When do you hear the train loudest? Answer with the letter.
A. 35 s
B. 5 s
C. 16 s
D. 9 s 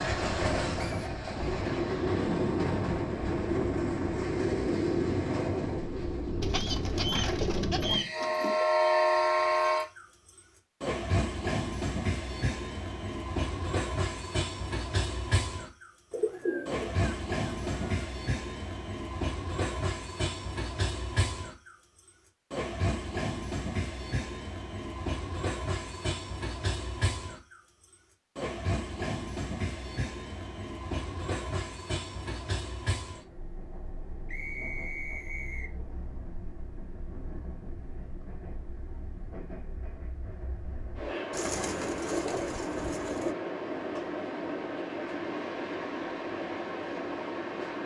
D.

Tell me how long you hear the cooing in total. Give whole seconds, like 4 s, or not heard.
6 s.